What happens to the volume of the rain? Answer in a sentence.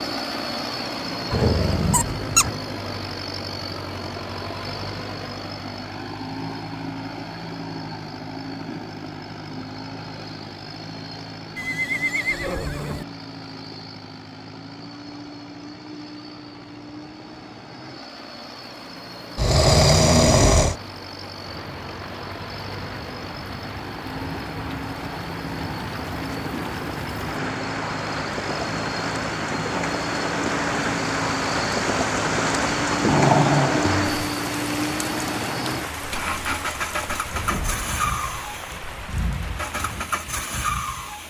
The loudness of the rain goes up, then down.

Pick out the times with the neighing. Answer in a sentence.
The neighing can be heard from 11.6 to 13.1 s.